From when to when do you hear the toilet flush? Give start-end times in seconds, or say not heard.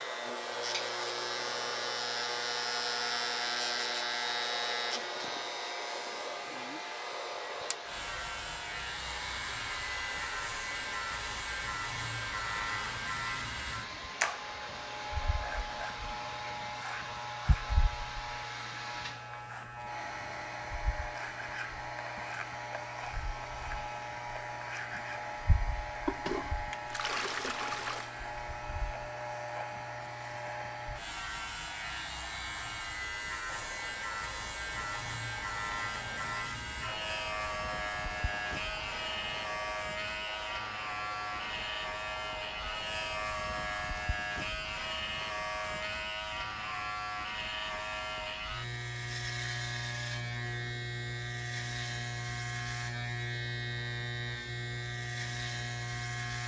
26.1-28.1.